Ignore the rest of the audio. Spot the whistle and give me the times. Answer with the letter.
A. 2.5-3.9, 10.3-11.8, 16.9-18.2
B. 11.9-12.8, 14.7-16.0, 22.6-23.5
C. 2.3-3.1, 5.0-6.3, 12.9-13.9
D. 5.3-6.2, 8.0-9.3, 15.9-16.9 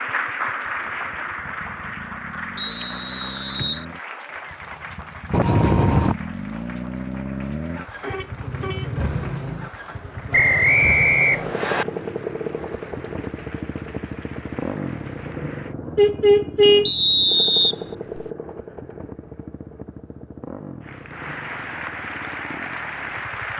A.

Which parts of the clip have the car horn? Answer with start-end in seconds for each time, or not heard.
5.3-6.2, 8.0-9.3, 15.9-16.9.